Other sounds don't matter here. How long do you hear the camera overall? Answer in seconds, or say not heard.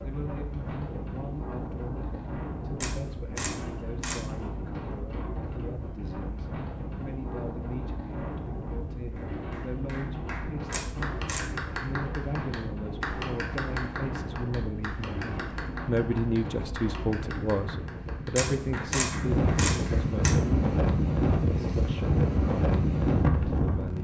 4 s.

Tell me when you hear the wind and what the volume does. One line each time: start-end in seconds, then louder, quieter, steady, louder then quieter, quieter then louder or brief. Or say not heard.
0.0-23.9 louder.